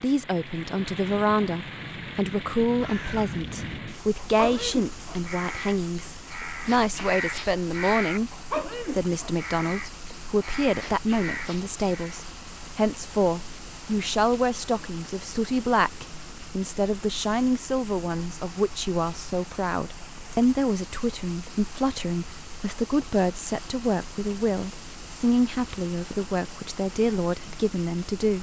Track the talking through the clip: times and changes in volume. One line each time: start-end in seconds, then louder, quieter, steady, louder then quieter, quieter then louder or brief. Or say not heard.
0.0-28.3 steady.